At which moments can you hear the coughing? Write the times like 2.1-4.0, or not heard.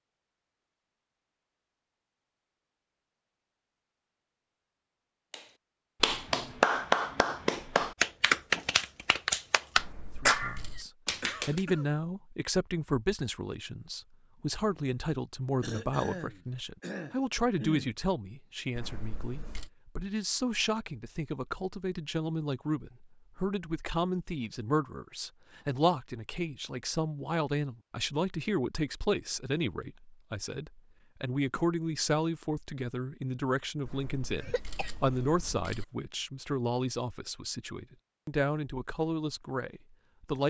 10.8-11.9, 15.6-17.9, 34.4-34.9.